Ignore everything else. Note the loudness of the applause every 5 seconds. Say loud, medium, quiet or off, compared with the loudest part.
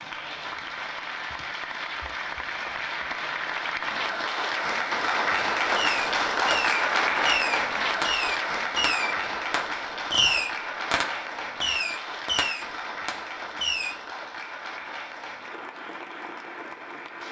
medium, loud, medium, quiet.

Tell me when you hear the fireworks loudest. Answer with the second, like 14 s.
10 s.